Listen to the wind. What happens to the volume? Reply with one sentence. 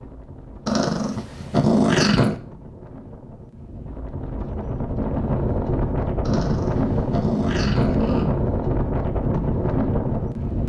The volume of the wind goes up.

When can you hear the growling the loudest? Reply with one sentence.
The volume of the growling peaks at 2 seconds.